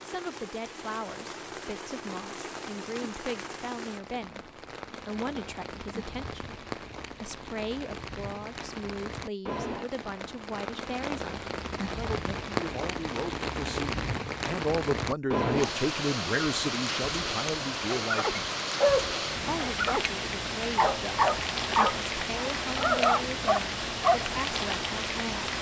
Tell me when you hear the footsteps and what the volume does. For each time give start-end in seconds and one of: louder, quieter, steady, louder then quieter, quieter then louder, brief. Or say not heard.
not heard.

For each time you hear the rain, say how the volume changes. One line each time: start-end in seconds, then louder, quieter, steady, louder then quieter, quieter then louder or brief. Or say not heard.
0.0-25.5 louder.